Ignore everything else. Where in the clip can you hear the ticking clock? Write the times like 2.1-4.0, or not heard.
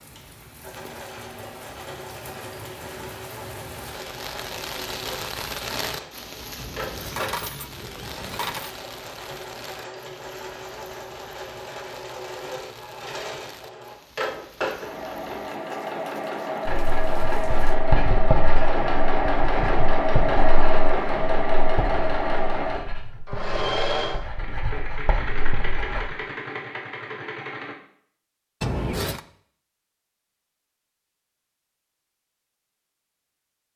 not heard.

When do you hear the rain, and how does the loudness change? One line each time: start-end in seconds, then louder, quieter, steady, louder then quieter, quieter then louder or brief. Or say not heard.
0.0-17.8 louder then quieter.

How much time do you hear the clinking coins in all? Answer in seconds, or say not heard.
3 s.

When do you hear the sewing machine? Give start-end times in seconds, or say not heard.
0.0-27.8.